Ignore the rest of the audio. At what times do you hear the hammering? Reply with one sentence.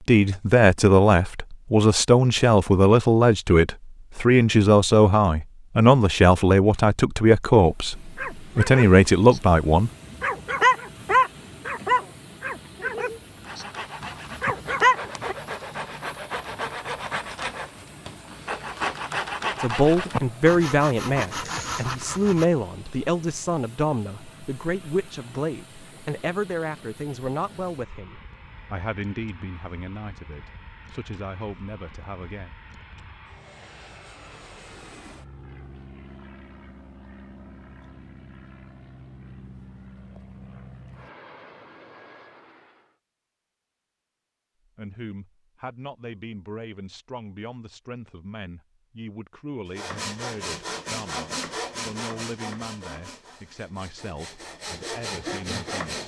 You can't hear the hammering here.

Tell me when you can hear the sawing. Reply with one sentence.
You can hear the sawing from 13.3 to 22.4 s and from 49.8 to 56.0 s.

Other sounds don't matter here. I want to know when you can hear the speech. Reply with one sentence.
You can hear the speech from 0.1 to 9.9 s, from 19.6 to 32.5 s and from 44.8 to 56.0 s.